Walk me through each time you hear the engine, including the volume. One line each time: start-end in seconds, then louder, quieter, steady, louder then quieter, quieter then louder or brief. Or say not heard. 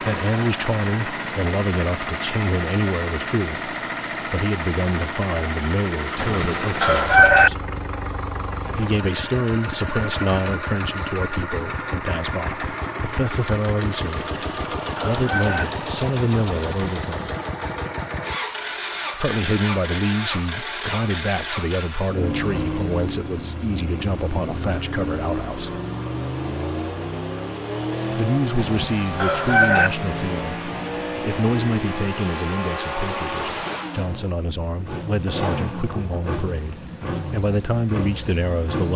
0.0-38.9 steady.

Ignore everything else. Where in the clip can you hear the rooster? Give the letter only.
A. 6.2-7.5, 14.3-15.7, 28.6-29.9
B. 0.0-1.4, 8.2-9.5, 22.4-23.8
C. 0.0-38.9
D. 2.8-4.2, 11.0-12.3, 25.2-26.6
A.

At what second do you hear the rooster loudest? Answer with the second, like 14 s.
7 s.